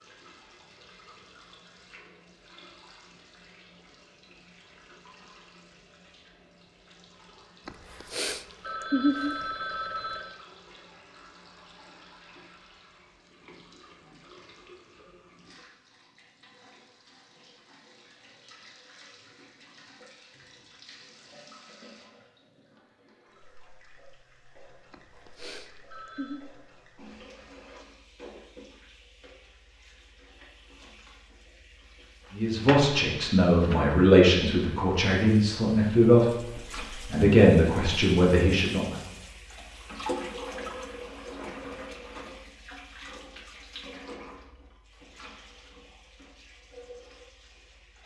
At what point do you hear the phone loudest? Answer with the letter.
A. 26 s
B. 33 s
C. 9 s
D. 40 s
C.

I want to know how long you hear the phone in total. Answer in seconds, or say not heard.
4 s.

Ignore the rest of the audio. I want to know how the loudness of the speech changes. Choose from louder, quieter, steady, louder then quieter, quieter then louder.
steady.